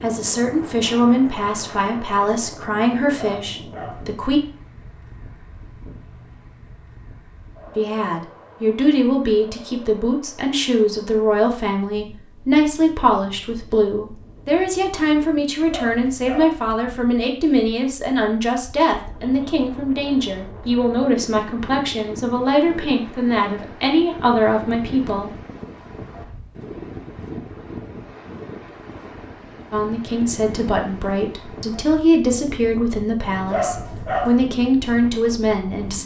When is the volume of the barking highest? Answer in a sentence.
The volume of the barking peaks at 34 seconds.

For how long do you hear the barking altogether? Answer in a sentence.
The barking can be heard for 3 seconds in total.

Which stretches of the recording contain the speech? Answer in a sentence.
You can hear the speech from 0.0 to 4.4 s, from 7.8 to 25.3 s and from 29.7 to 36.0 s.